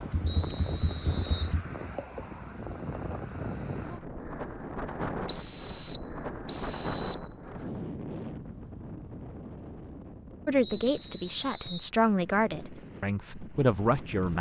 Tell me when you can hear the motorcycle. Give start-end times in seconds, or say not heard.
0.0-1.6.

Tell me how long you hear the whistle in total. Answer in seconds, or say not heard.
5 s.